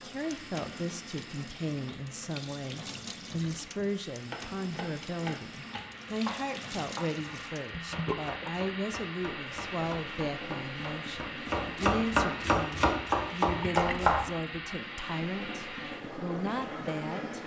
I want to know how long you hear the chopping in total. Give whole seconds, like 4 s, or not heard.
10 s.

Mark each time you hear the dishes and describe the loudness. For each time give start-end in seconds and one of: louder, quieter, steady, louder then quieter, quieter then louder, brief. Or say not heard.
not heard.